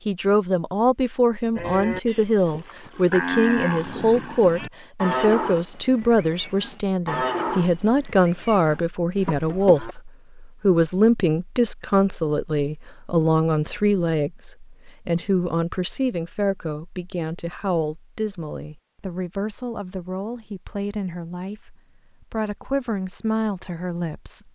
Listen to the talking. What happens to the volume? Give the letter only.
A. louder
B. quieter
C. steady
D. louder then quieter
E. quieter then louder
B.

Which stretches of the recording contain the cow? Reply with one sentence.
You can hear the cow from 1.6 to 9.9 s.